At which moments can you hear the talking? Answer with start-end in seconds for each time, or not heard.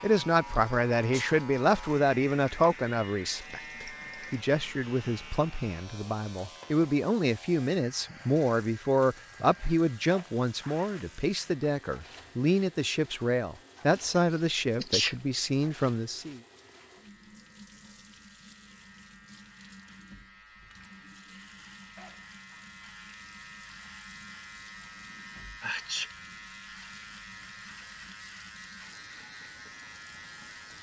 0.0-16.4.